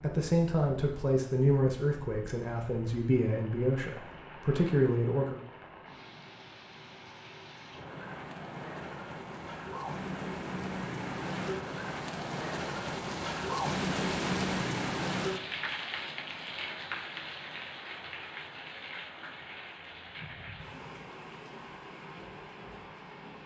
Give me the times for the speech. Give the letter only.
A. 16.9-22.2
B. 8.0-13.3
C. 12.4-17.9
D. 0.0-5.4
D.